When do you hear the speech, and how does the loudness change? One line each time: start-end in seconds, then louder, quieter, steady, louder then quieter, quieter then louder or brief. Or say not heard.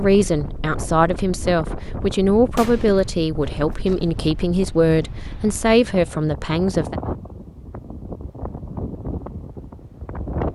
0.0-7.0 steady.